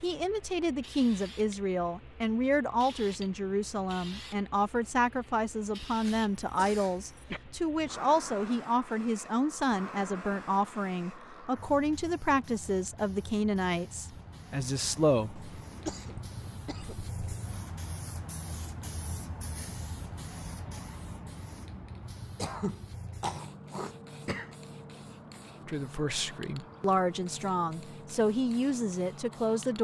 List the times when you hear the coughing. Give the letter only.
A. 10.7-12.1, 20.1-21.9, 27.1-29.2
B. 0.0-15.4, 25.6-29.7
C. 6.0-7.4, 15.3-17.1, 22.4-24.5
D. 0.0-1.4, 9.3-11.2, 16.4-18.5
C.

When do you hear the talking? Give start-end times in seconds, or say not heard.
0.0-15.4, 25.6-29.7.